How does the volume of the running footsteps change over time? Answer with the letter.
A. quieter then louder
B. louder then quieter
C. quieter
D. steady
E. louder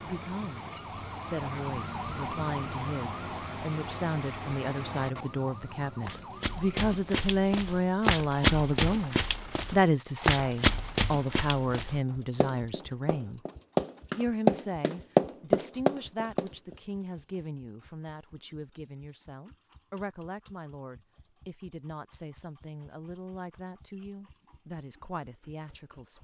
E.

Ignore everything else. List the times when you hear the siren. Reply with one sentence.
The siren can be heard from 0.0 to 7.0 s.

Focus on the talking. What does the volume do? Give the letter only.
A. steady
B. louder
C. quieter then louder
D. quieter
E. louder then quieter
E.